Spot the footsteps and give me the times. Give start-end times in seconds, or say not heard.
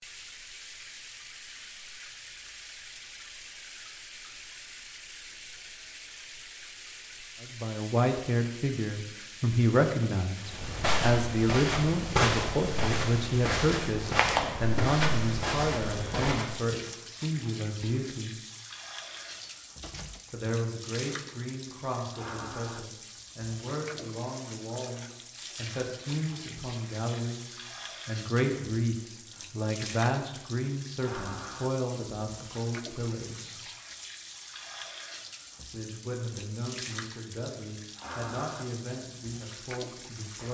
10.4-16.6.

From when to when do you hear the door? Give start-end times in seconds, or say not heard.
19.1-20.5.